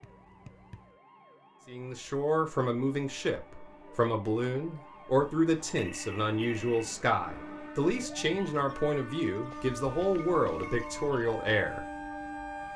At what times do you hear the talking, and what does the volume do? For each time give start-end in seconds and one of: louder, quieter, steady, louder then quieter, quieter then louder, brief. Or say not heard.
1.6-11.8 steady.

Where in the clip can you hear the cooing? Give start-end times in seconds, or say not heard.
not heard.